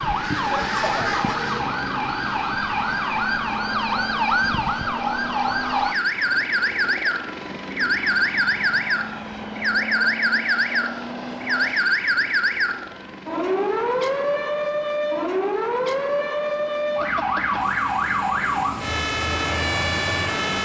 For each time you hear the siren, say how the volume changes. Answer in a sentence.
The siren can be heard from 0.0 to 20.6 s, at a steady volume.